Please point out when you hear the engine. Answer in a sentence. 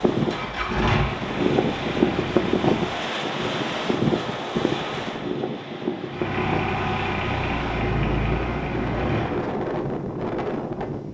The engine can be heard from 0.1 to 3.0 s and from 6.1 to 9.4 s.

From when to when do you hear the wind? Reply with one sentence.
The wind can be heard from 0.0 to 11.1 s.